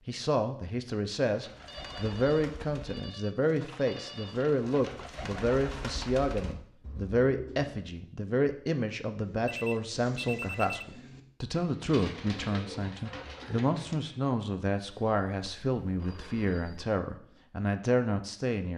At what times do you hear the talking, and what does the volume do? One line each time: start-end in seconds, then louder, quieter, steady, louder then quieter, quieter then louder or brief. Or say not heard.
0.1-18.7 steady.